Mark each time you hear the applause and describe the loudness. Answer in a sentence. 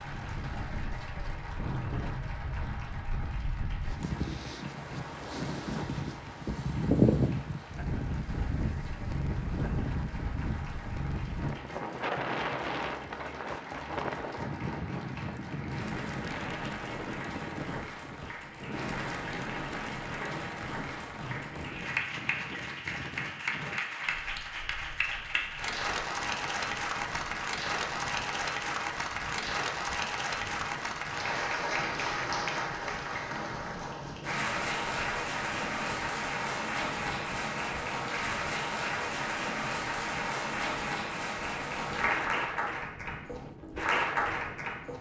You can hear the applause from 0.0 to 44.9 s, getting louder.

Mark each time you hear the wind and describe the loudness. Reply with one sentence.
You can hear the wind from 0.0 to 44.9 s, getting quieter.